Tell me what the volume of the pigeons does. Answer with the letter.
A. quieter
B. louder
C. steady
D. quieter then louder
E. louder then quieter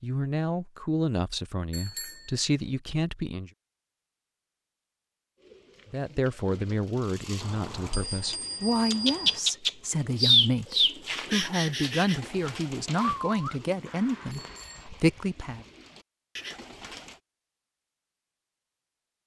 E.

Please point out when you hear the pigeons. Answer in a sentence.
The pigeons can be heard from 5.5 to 17.1 s.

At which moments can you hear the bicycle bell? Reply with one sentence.
The bicycle bell can be heard from 1.7 to 2.8 s, from 7.4 to 9.4 s and from 13.8 to 14.9 s.